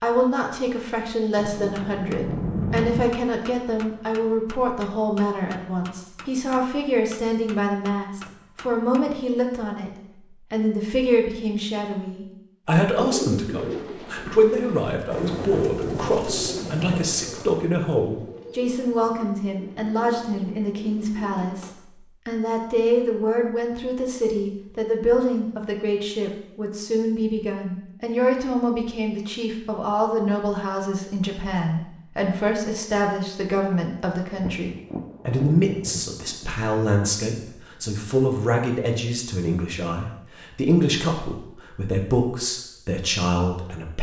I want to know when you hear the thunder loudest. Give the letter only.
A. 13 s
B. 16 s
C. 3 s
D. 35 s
C.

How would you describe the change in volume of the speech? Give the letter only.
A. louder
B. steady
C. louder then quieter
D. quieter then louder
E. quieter
B.